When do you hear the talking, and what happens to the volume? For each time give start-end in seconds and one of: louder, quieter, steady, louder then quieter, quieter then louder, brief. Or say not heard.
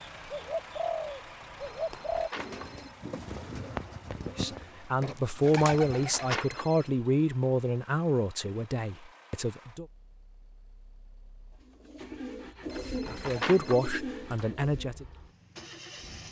4.2-9.8 quieter
13.1-15.1 brief.